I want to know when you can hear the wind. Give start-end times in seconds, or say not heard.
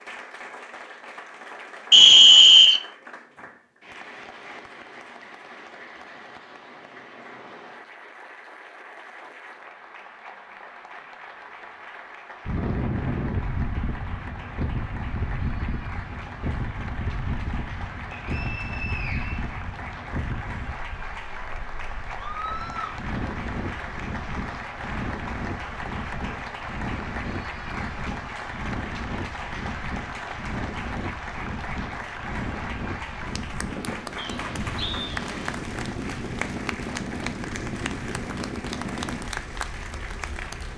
12.4-40.7.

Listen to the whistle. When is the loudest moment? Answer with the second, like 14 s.
2 s.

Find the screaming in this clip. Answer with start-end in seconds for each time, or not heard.
22.1-22.9.